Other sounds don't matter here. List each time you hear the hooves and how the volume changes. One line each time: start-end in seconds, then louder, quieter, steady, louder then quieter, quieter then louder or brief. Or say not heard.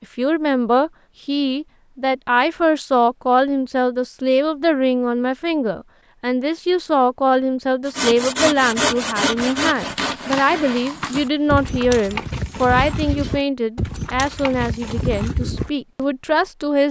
9.3-15.7 steady.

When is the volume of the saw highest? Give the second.
9 s.